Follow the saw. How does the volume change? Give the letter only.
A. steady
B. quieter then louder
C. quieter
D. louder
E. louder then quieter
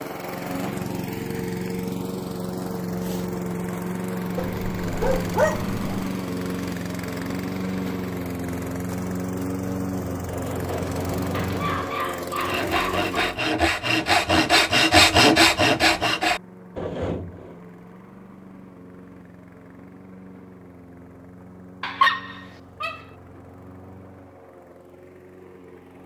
E.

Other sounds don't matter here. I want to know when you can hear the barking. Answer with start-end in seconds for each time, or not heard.
4.3-6.1, 11.3-13.1, 21.8-23.0.